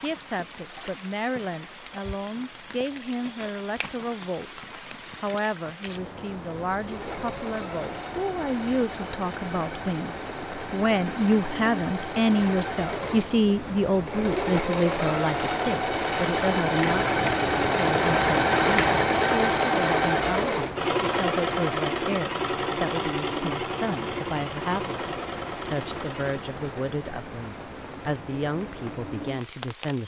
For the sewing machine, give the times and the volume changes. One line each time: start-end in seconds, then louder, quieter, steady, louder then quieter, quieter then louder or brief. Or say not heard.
6.7-26.5 louder then quieter.